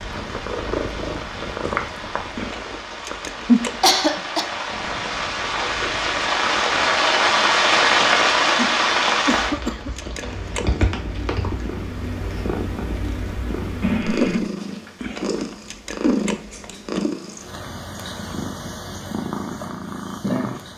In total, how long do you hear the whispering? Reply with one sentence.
You can't hear the whispering here.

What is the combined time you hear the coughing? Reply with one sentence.
The coughing can be heard for 3 seconds in total.